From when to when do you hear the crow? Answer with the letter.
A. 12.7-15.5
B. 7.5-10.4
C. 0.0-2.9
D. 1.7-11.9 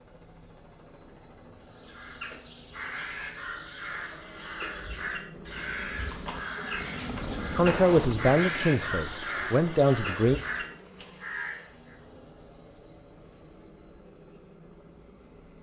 D.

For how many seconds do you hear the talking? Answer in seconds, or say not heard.
3 s.